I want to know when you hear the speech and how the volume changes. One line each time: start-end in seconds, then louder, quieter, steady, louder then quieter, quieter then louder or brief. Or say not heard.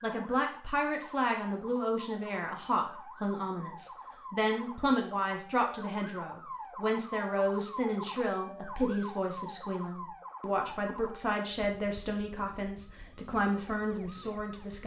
0.0-14.8 steady.